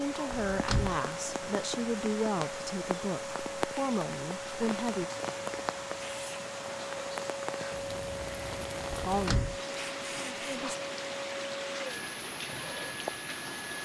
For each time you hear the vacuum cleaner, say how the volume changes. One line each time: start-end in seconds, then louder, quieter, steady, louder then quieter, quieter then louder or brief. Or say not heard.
0.0-13.7 steady.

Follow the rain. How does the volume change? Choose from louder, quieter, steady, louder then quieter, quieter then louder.
steady.